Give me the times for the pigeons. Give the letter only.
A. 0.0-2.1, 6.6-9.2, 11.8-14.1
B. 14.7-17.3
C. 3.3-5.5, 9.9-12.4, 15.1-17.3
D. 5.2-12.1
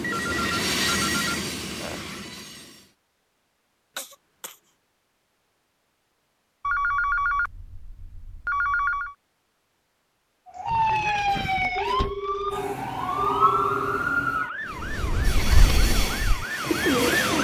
B.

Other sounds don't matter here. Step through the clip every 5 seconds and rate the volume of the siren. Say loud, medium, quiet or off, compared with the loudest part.
off, off, loud, medium.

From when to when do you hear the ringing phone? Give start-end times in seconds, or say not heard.
0.0-2.1, 6.6-9.2, 11.8-14.1.